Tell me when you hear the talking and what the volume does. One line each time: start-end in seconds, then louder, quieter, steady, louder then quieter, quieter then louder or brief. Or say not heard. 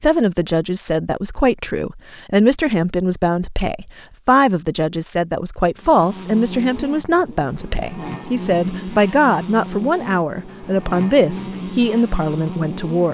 0.0-13.0 steady.